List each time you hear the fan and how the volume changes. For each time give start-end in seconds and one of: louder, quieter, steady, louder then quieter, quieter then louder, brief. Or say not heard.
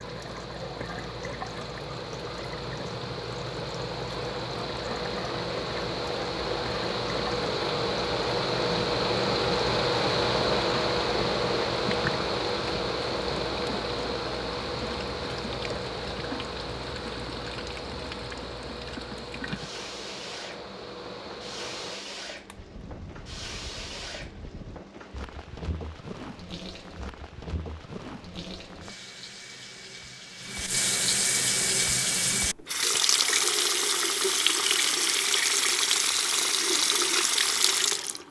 0.0-24.9 louder then quieter.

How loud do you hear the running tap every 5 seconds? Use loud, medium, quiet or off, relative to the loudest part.
quiet, quiet, quiet, quiet, quiet, quiet, loud, loud.